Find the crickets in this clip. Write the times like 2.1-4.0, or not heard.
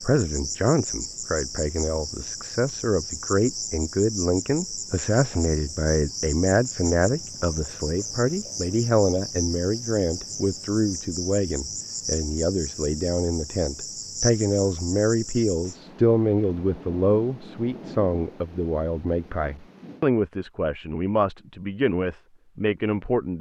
0.0-15.8.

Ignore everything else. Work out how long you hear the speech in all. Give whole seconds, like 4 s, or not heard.
23 s.